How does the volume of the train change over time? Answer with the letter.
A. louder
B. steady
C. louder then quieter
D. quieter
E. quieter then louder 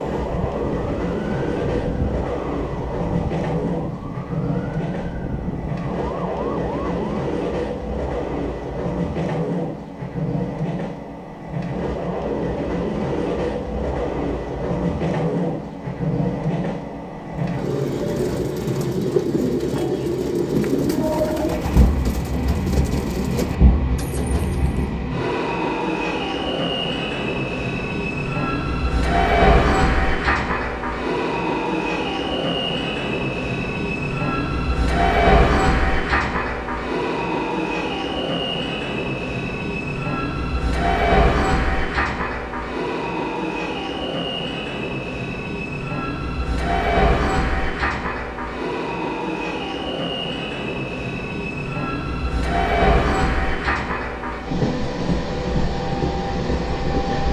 B.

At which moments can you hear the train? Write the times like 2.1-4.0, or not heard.
0.0-57.2.